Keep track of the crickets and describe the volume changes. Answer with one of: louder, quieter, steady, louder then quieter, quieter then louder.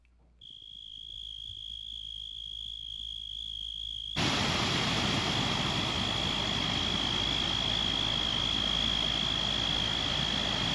louder.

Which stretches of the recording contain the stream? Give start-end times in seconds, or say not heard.
4.2-10.6.